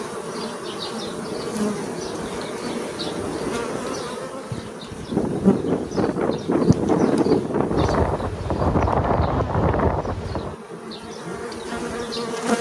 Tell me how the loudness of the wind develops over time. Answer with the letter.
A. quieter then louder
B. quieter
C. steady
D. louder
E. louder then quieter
D.